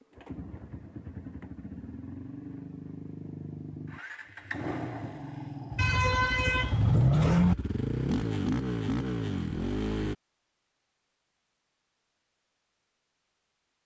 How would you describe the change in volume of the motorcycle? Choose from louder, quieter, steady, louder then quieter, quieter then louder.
louder.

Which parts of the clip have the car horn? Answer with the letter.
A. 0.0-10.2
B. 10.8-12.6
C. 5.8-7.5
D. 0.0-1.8
C.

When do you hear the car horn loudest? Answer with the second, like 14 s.
7 s.